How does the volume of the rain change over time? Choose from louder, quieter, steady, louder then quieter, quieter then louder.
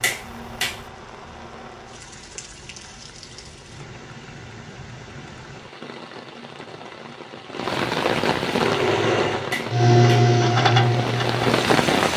louder.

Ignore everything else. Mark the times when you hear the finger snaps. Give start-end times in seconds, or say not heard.
0.0-0.8, 9.5-10.3.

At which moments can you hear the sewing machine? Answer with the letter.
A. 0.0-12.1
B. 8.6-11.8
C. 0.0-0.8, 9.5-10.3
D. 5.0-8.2
B.